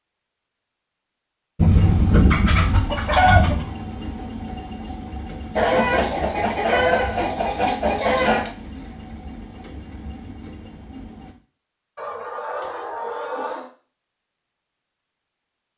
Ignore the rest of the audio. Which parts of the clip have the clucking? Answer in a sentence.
You can hear the clucking from 1.6 to 3.6 s, from 5.5 to 8.5 s and from 11.9 to 13.7 s.